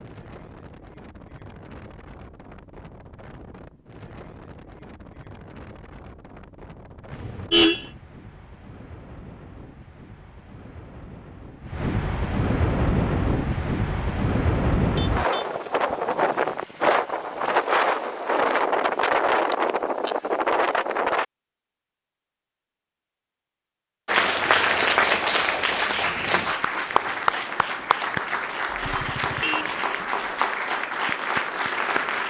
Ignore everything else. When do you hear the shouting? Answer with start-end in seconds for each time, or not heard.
not heard.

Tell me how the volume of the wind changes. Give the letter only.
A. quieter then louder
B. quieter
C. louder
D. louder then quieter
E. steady
C.